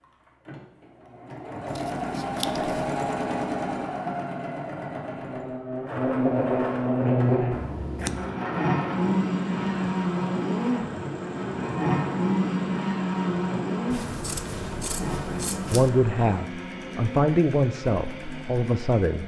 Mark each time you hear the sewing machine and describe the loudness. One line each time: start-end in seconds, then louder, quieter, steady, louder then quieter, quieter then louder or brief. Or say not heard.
0.0-19.2 quieter.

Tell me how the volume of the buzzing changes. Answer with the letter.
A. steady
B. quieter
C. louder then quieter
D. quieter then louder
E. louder
B.